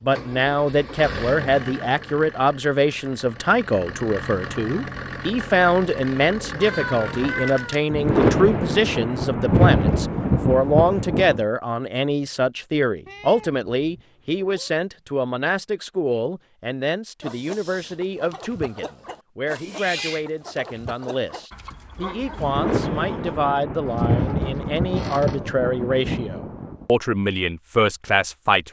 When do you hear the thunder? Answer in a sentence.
You can hear the thunder from 7.9 to 11.4 s and from 22.4 to 26.9 s.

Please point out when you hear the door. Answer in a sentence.
You can't hear the door here.